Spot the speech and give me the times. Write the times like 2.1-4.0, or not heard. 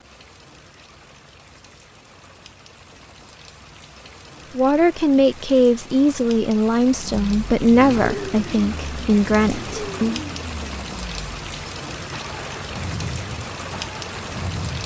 4.5-10.2.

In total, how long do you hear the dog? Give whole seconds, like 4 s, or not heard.
not heard.